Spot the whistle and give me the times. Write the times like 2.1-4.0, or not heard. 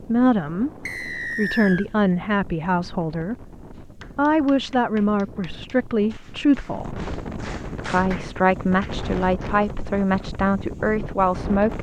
0.8-1.9.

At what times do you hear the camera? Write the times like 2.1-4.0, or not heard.
not heard.